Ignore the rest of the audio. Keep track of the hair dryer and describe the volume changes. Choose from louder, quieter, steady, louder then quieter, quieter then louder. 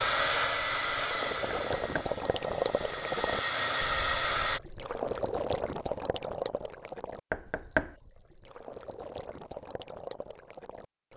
quieter then louder.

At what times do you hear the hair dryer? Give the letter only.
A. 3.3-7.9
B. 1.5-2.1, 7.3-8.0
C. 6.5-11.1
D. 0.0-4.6
D.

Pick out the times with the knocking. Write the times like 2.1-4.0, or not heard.
1.5-2.1, 7.3-8.0.